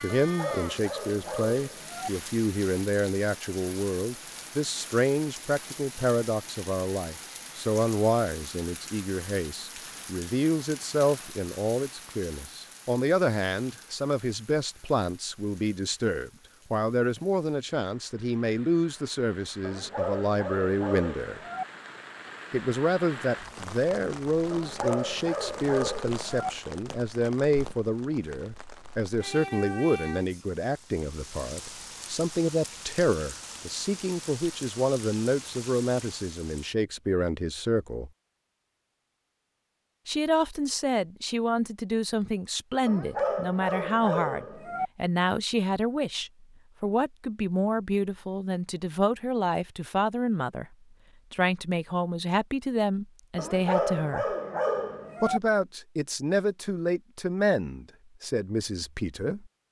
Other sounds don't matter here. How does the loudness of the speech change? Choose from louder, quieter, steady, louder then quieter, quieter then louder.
steady.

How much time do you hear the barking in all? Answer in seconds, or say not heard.
10 s.